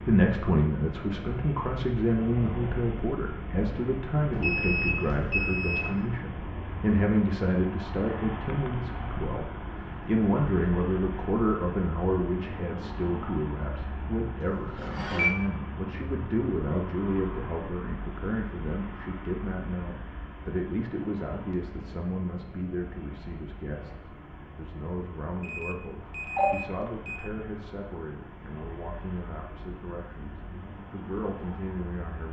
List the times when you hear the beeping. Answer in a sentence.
You can hear the beeping from 4.3 to 6.0 s, from 14.6 to 15.3 s and from 25.4 to 27.2 s.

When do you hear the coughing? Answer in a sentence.
The coughing can't be heard in this clip.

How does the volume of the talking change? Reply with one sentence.
The loudness of the talking goes down.